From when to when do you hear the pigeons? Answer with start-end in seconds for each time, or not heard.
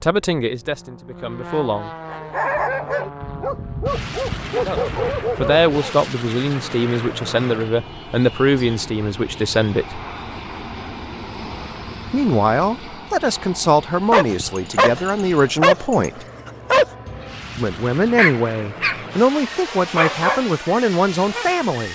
not heard.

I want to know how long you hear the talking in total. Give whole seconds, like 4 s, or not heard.
16 s.